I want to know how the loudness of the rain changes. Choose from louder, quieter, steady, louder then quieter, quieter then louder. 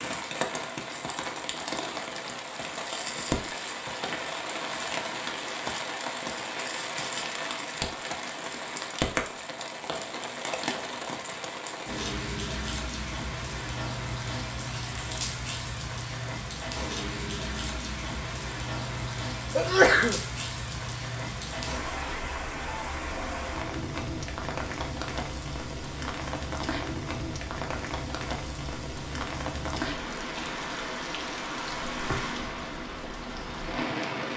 steady.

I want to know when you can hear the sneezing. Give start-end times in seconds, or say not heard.
19.6-20.2.